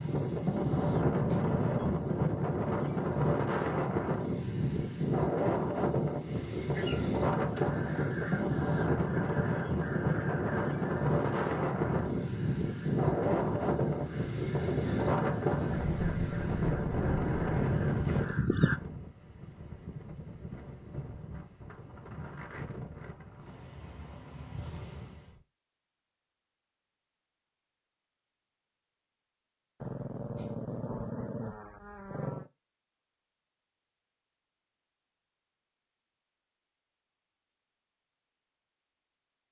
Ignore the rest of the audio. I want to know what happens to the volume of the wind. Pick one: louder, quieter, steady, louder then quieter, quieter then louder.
quieter.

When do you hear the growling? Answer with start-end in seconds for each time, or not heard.
0.7-2.0, 29.8-32.5.